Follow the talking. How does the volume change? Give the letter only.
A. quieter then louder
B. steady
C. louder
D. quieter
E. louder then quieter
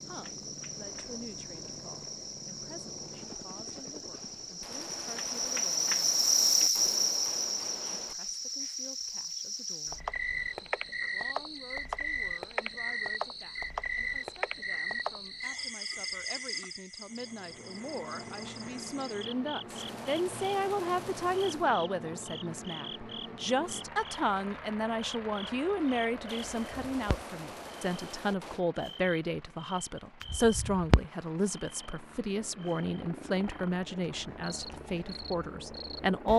C.